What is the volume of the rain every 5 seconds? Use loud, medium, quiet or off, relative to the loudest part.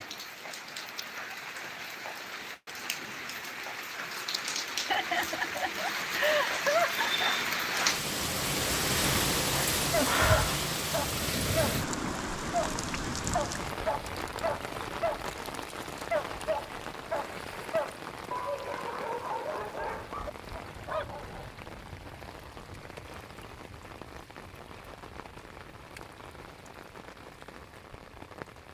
medium, loud, loud, medium, quiet, quiet.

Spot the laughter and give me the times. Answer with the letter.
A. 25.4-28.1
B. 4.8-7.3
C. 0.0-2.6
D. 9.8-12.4
B.